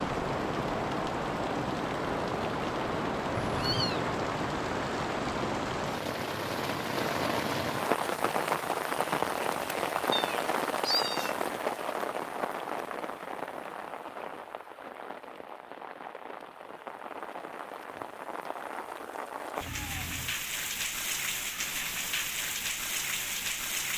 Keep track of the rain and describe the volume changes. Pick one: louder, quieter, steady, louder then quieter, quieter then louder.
quieter then louder.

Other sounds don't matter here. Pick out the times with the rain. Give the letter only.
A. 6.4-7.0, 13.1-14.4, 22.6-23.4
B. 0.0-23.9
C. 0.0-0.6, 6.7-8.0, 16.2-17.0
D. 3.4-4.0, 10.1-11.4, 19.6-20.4
B.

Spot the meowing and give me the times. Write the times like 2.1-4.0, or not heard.
3.4-4.0, 10.1-11.4, 19.6-20.4.